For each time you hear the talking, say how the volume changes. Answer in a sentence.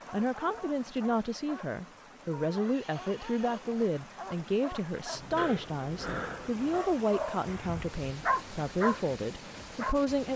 You can hear the talking from 0.1 to 10.3 s, at a steady volume.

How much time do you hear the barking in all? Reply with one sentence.
You can hear the barking for 10 seconds altogether.